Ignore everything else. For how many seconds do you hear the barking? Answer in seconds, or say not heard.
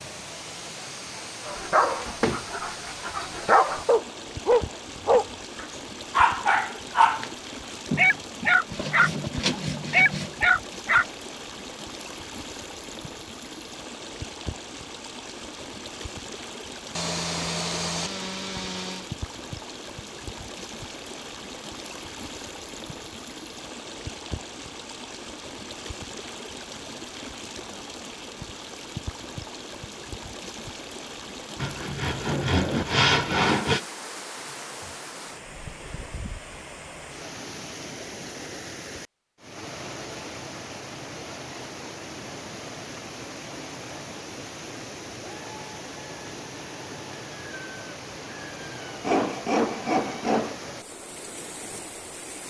9 s.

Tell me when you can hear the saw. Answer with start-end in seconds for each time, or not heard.
7.9-10.4, 16.9-19.1, 31.6-33.8, 49.0-50.5.